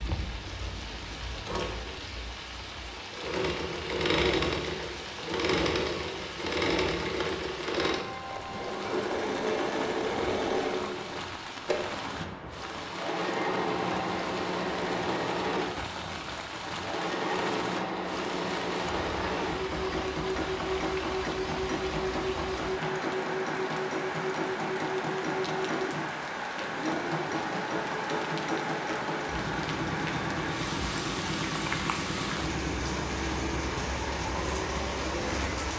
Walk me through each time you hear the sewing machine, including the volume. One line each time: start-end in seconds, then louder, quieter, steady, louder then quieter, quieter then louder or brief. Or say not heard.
0.0-35.7 steady.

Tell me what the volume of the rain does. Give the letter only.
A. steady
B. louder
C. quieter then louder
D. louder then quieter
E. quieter
B.